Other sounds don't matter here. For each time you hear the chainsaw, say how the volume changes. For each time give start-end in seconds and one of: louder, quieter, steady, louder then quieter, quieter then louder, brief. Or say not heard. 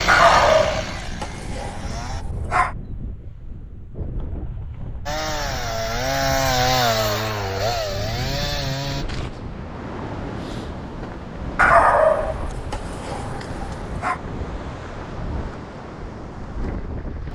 0.0-2.2 brief
5.0-9.1 louder then quieter.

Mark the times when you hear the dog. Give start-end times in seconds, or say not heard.
0.1-2.8, 11.6-14.2.